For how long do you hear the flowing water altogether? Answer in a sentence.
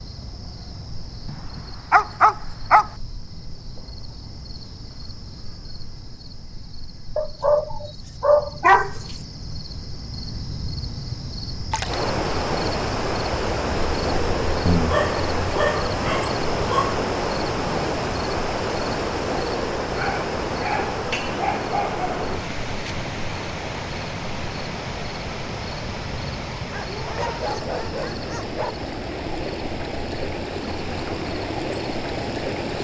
You can hear the flowing water for 21 seconds altogether.